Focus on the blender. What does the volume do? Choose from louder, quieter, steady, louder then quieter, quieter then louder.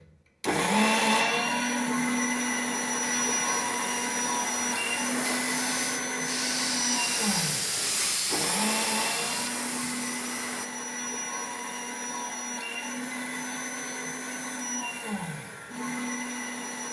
quieter.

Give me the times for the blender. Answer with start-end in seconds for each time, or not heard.
0.4-16.8.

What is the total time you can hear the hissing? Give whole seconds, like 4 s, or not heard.
8 s.